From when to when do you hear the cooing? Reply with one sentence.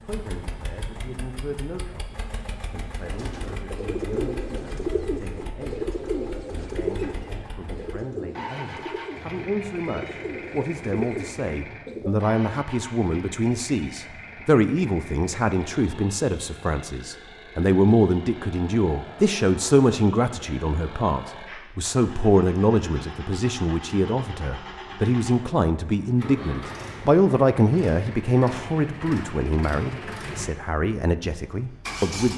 The cooing can be heard from 3.0 to 12.2 s.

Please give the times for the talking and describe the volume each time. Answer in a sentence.
The talking can be heard from 0.0 to 32.3 s, getting louder.